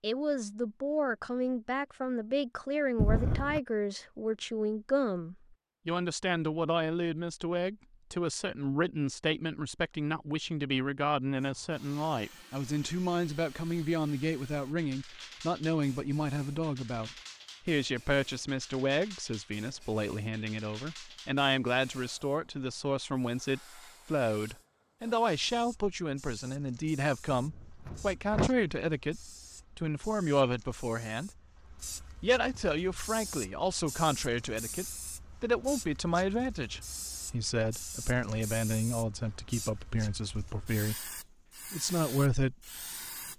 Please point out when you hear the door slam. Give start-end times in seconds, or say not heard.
3.0-3.6, 27.3-28.5.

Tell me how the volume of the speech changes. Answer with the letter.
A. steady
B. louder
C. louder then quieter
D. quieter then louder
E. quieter
A.